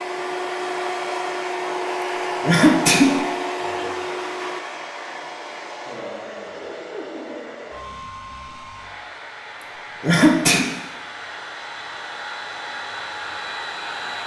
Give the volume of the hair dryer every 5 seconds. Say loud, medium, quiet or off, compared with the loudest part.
loud, medium, medium.